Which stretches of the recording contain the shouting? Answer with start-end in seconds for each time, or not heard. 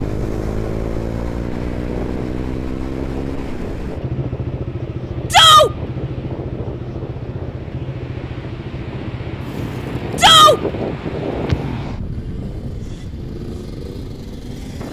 5.3-5.7, 10.2-10.6.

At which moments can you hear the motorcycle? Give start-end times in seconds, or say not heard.
0.0-14.8.